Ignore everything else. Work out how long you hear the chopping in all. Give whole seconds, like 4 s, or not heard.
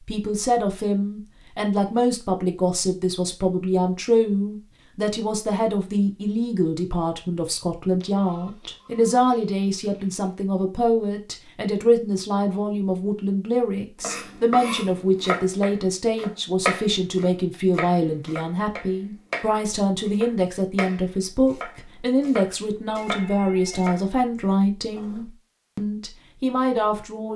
11 s.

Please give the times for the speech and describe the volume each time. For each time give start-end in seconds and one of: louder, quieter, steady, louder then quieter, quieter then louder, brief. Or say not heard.
0.1-27.3 steady.